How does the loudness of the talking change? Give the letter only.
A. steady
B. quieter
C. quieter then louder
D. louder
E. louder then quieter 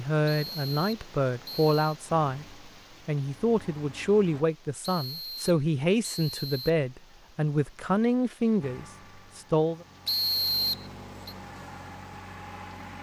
A.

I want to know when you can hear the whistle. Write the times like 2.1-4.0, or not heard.
0.2-1.9, 4.8-6.8, 10.1-11.3.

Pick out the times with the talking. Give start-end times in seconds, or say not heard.
0.0-9.8.